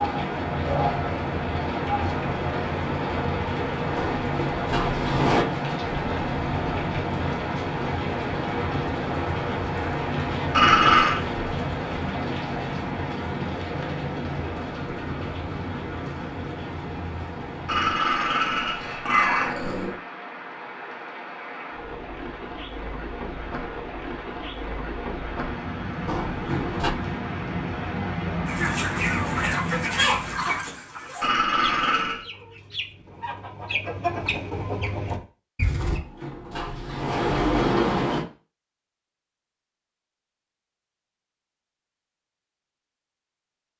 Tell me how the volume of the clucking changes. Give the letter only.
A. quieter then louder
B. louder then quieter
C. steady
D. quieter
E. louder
A.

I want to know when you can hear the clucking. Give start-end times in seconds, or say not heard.
28.4-36.0.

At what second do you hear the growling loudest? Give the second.
11 s.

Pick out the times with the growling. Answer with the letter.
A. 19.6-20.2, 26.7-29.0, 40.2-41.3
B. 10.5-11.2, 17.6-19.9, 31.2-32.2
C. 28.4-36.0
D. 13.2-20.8
B.